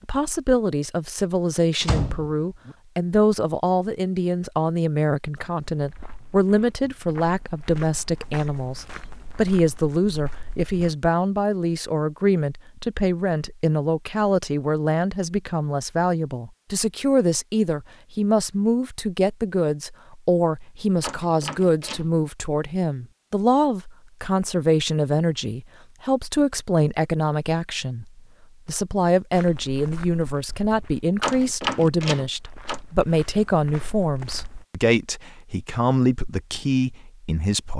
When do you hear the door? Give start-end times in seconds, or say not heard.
1.8-2.8, 21.0-22.1, 31.2-32.8.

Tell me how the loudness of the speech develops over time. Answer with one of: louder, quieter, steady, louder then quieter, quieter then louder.
steady.